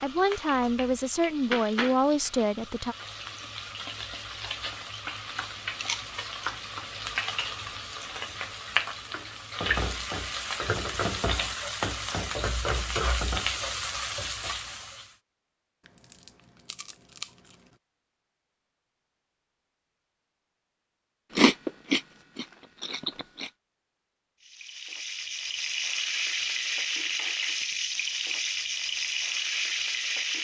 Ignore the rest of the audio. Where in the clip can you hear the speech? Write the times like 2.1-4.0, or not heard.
0.0-3.0.